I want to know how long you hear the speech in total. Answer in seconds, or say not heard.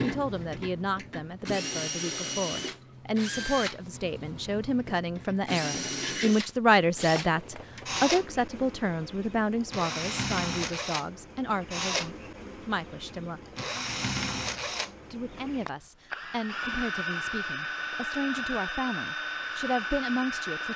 19 s.